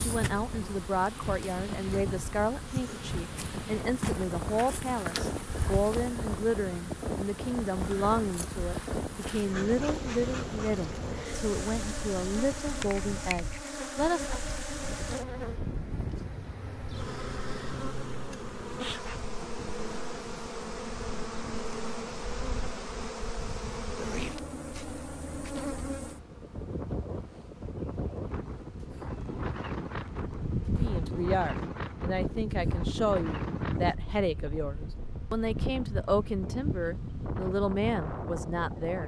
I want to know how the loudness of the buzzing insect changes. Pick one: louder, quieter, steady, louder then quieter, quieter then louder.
steady.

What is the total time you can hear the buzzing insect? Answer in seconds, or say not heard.
39 s.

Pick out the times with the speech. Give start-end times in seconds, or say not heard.
0.0-14.4, 30.8-39.0.